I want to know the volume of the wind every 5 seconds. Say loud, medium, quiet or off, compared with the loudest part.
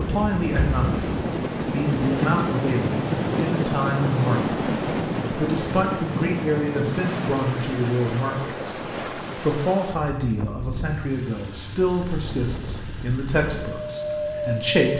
loud, loud, medium.